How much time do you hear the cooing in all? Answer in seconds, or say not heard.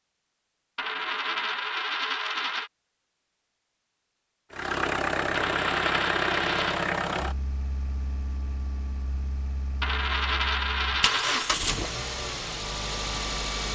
not heard.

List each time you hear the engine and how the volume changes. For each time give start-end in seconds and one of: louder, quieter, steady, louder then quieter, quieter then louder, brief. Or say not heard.
4.5-13.7 quieter then louder.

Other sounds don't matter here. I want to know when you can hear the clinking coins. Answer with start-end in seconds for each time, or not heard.
0.8-2.7, 5.3-6.9, 9.8-11.6.